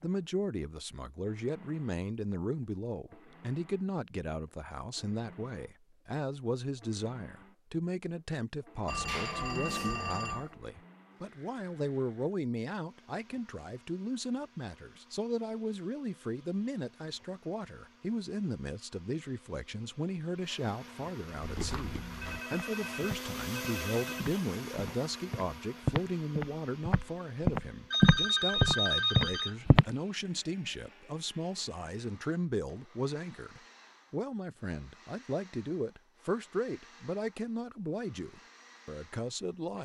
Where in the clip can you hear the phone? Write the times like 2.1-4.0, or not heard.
8.8-10.5, 22.2-24.2, 27.9-29.6.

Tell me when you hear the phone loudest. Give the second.
29 s.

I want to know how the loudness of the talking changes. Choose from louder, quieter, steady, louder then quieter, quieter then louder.
steady.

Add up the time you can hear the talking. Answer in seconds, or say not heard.
40 s.